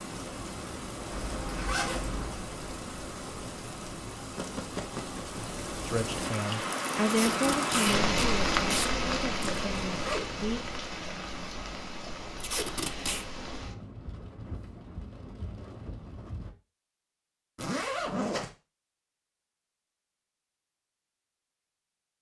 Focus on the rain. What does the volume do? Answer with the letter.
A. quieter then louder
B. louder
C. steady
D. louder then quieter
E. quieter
D.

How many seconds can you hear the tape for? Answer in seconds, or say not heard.
3 s.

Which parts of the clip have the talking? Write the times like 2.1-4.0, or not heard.
5.8-10.6.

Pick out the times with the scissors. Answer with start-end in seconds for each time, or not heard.
not heard.